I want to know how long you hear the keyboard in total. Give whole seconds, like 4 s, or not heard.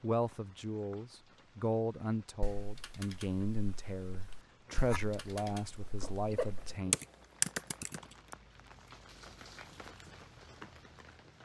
6 s.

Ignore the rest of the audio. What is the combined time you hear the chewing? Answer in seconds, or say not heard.
2 s.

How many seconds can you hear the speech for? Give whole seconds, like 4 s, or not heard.
7 s.